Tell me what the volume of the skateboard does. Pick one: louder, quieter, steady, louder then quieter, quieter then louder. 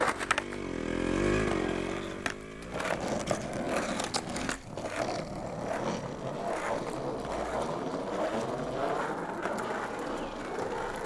louder.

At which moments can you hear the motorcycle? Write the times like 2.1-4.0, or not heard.
0.0-4.7.